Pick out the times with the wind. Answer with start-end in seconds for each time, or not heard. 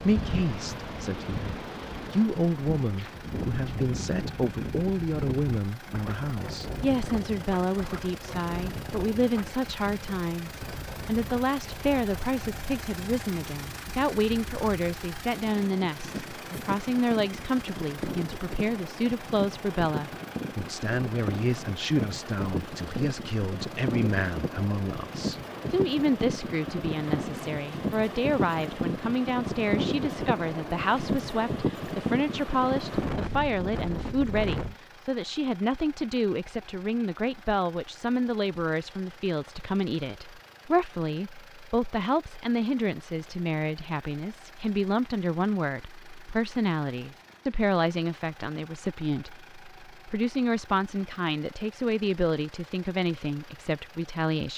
0.0-34.8.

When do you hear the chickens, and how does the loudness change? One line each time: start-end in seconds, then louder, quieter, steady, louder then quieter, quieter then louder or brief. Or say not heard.
not heard.